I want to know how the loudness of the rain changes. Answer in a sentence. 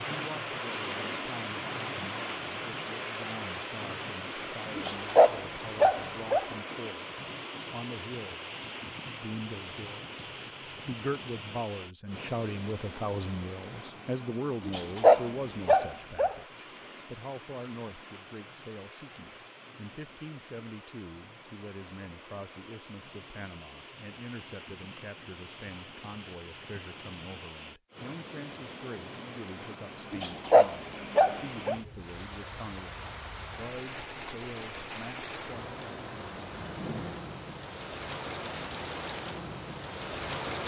The volume of the rain goes down, then up.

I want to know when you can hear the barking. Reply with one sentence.
You can hear the barking from 4.8 to 6.5 s, from 14.7 to 16.4 s and from 30.1 to 31.8 s.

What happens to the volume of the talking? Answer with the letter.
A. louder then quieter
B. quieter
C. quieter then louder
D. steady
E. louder
A.